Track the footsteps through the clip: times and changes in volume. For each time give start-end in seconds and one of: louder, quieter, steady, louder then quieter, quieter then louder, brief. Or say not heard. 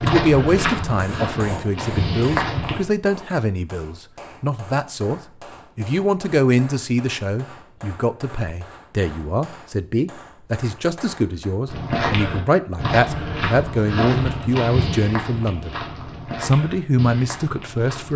0.0-2.9 brief
11.7-18.1 quieter.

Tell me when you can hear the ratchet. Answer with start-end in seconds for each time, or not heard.
not heard.